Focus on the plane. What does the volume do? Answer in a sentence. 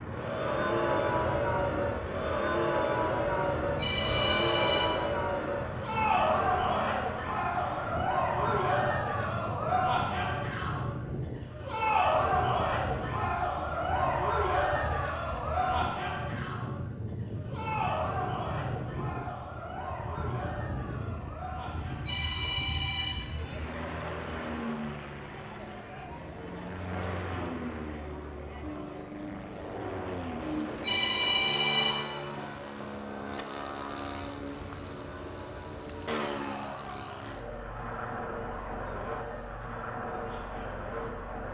The volume of the plane stays about the same.